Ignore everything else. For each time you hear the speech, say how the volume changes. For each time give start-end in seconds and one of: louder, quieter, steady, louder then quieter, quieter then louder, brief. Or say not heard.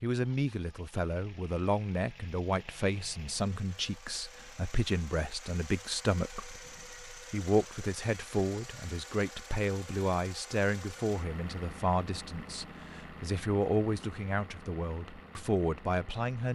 0.0-16.4 steady.